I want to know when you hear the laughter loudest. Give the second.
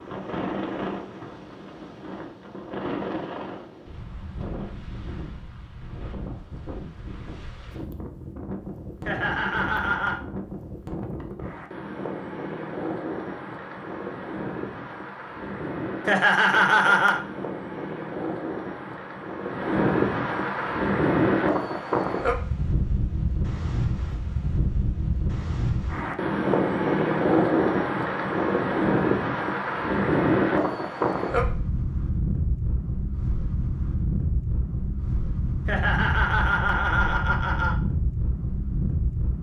17 s.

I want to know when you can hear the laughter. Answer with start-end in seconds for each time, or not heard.
9.1-10.2, 16.1-17.2, 35.6-37.8.